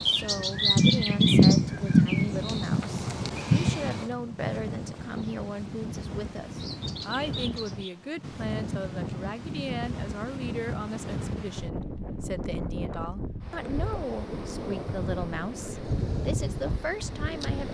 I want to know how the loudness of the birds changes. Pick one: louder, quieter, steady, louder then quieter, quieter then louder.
quieter.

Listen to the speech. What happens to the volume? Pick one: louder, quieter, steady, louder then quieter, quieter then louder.
steady.